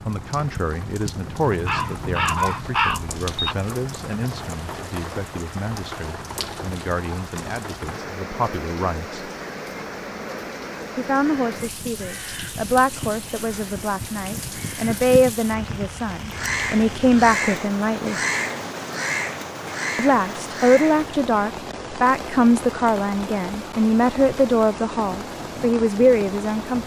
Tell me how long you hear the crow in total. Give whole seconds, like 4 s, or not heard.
12 s.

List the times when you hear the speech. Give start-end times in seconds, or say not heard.
0.1-9.3, 10.9-18.1, 19.9-26.8.